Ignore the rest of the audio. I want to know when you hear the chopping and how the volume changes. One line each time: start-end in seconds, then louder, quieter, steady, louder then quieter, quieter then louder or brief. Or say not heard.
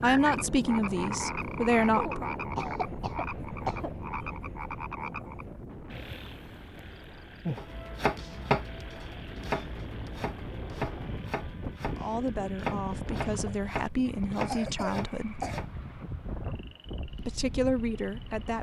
7.5-15.7 quieter then louder.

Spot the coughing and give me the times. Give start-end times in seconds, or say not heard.
1.9-3.9, 14.4-15.6.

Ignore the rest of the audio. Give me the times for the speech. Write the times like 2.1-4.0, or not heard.
0.0-2.3, 11.9-15.4, 17.1-18.5.